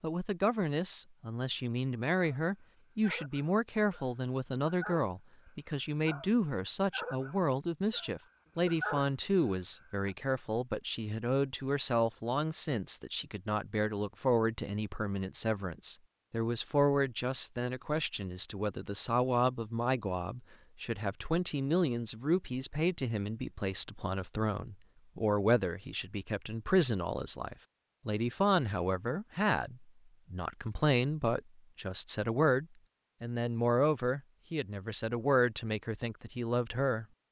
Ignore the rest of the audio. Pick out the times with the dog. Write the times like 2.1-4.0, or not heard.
2.4-10.1.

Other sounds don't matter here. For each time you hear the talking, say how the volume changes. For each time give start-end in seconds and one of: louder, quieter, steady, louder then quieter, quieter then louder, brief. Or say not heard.
0.0-37.0 steady.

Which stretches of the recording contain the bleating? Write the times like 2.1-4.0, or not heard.
not heard.